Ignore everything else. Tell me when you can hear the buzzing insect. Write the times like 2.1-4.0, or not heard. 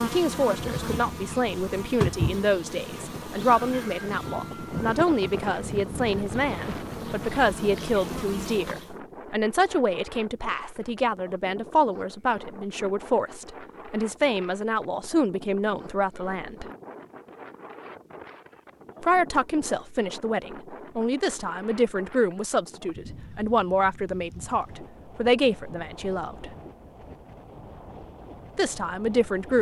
0.0-8.9.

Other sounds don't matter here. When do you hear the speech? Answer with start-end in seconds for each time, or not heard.
0.0-16.6, 19.0-26.6, 28.6-29.5.